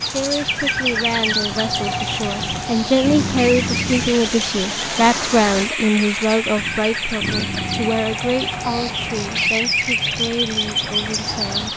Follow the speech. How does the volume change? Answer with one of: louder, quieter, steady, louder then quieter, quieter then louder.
louder then quieter.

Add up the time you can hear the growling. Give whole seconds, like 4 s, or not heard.
3 s.